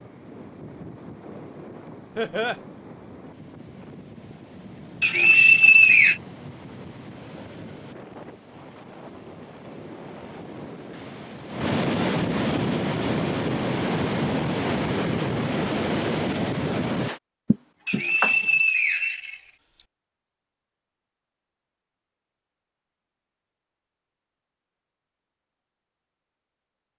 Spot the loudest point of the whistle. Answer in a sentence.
The loudest moment of the whistle is at 6 seconds.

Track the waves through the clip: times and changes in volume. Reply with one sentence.
The waves can be heard from 0.0 to 17.2 s, getting louder.